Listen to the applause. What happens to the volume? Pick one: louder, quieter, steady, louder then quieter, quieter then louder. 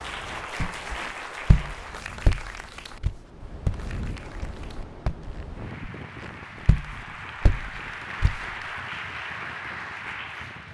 quieter then louder.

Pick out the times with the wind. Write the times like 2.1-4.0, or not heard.
0.0-10.6.